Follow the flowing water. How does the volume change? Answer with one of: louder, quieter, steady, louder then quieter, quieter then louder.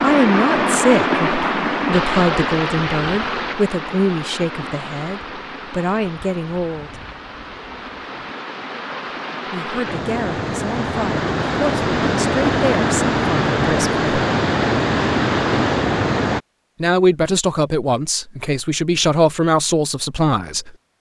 quieter then louder.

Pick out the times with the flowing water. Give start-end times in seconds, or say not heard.
0.0-16.4.